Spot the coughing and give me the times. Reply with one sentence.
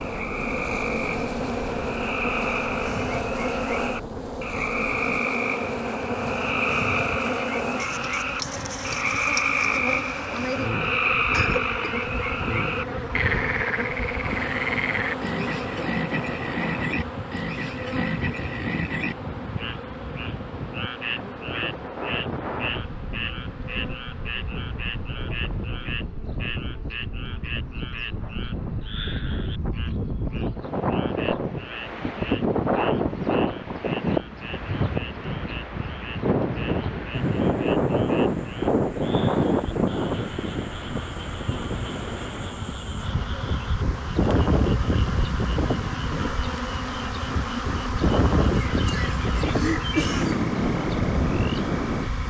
You can hear the coughing from 11.3 to 11.9 s and from 48.6 to 50.5 s.